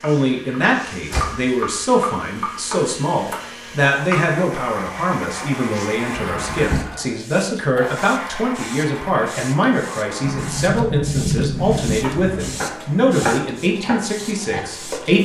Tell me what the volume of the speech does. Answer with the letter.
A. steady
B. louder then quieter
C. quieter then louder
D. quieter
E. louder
A.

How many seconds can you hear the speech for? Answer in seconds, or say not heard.
15 s.